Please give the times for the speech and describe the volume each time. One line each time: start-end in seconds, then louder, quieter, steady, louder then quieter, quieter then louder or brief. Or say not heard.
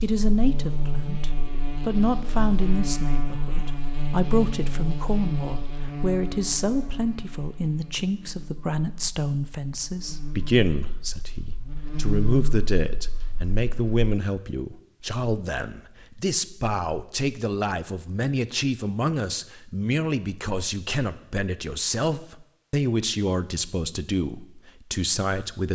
0.0-25.7 steady.